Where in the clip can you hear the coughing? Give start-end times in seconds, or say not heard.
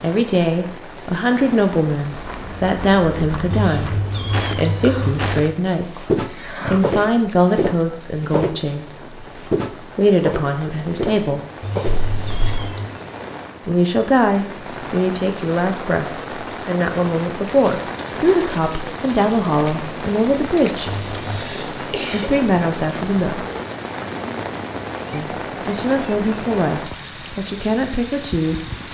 6.0-7.0, 11.8-12.8, 21.2-22.3.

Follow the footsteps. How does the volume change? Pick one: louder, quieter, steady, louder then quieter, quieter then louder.
louder.